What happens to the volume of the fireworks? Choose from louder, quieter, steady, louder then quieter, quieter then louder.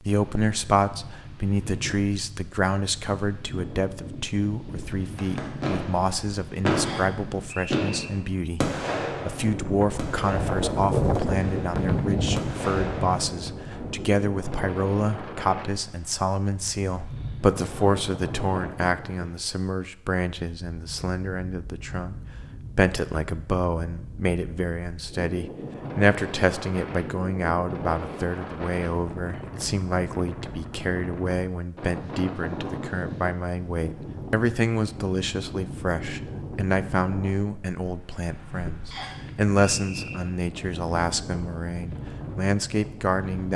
quieter then louder.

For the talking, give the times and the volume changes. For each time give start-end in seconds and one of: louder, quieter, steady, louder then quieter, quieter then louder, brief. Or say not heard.
0.0-43.5 steady.